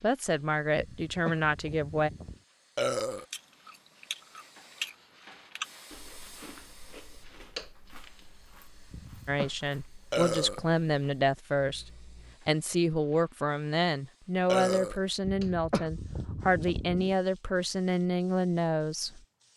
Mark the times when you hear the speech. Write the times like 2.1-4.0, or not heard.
0.0-2.1, 9.2-19.5.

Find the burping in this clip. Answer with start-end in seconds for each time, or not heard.
2.8-3.2, 10.1-10.6, 14.4-15.0.